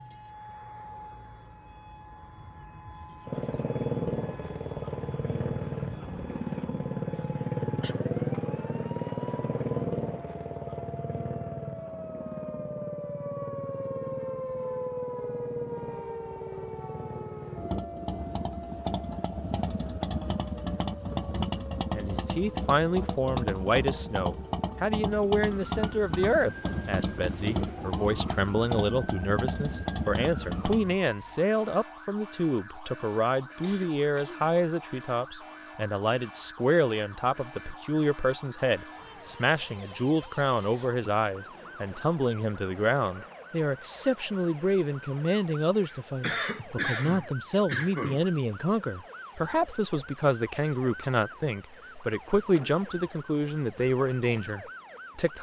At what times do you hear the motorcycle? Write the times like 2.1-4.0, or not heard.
3.2-30.9.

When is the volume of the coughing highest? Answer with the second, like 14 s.
47 s.